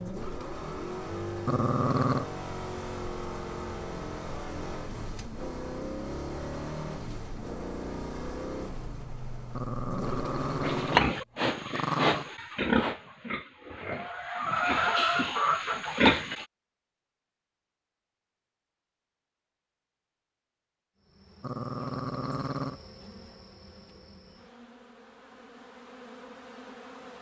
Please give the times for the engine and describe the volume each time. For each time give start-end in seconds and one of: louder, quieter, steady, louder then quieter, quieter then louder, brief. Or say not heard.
0.0-11.1 steady.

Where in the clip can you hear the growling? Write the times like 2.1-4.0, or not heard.
1.4-2.2, 9.6-12.3, 21.4-22.8.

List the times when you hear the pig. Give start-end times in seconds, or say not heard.
10.6-16.4.